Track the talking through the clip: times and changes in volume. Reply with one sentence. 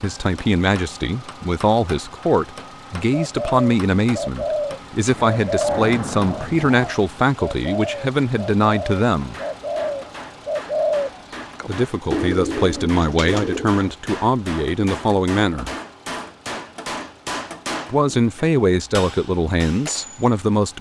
You can hear the talking from 0.0 to 9.3 s, at a steady volume; from 11.7 to 15.7 s, at a steady volume; and briefly from 17.9 to 20.7 s.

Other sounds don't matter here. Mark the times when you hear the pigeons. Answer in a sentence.
You can hear the pigeons from 3.1 to 13.8 s.